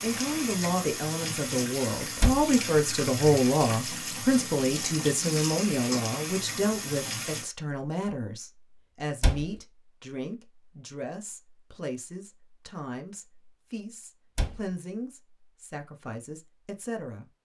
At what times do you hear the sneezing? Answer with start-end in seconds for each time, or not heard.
not heard.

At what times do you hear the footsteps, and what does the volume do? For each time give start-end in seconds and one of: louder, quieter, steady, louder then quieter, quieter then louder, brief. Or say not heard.
not heard.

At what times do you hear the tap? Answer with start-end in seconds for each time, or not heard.
0.0-7.5.